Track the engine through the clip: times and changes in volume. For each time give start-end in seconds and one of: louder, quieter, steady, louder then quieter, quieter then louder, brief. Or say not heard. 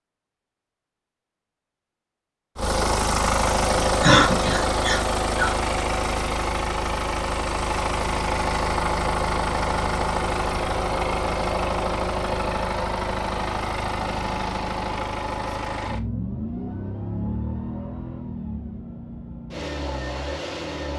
2.5-20.9 quieter.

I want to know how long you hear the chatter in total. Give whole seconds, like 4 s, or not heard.
not heard.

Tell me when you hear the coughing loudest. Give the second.
4 s.